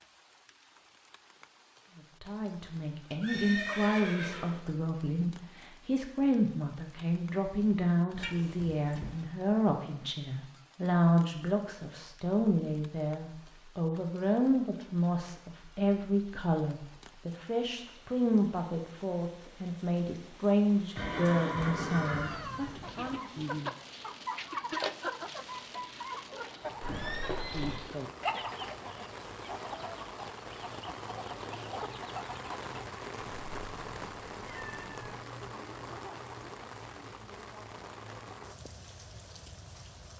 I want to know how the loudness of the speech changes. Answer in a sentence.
The volume of the speech stays about the same.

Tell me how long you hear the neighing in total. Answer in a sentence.
The neighing can be heard for 4 seconds in total.